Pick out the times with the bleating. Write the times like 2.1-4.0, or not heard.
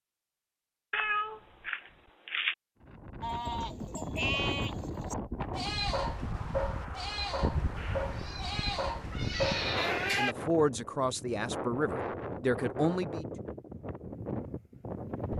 3.2-10.3.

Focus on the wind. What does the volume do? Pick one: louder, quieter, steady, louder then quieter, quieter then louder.
steady.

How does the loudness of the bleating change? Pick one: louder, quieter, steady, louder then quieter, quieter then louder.
steady.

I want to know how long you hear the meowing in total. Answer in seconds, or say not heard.
4 s.